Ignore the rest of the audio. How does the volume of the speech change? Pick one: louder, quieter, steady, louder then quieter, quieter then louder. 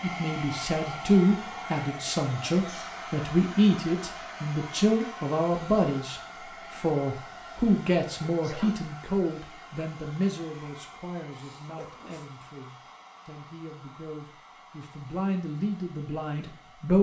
quieter.